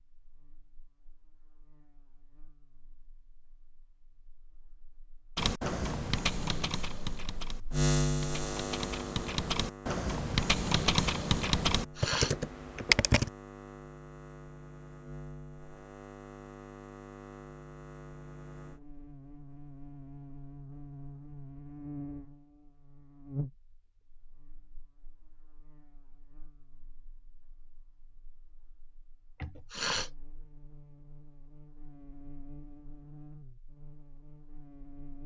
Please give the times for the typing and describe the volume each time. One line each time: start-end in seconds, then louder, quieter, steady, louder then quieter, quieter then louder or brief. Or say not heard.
5.3-13.3 quieter then louder.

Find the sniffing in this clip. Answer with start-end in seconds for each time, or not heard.
11.8-12.3, 29.4-30.1.